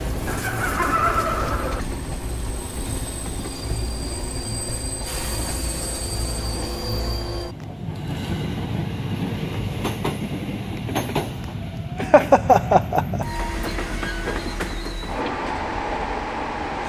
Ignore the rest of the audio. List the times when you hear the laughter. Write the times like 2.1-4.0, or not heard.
0.2-1.8, 12.0-13.2.